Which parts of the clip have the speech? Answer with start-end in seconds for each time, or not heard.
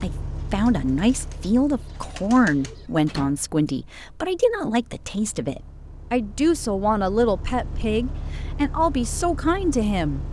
0.0-10.2.